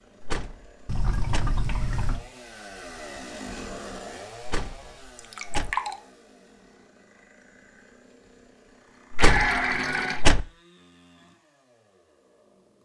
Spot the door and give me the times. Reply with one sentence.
The door can be heard from 0.2 to 1.5 s, from 4.4 to 5.7 s and from 9.1 to 10.4 s.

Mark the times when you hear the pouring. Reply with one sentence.
The pouring can be heard from 0.8 to 2.2 s, from 5.2 to 6.0 s and from 9.2 to 10.2 s.